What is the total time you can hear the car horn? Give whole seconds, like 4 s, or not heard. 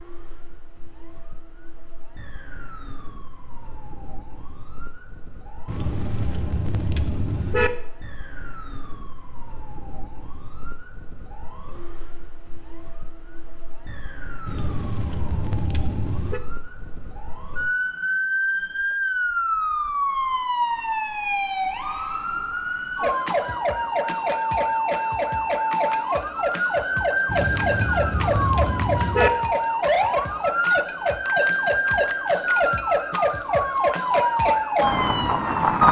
6 s.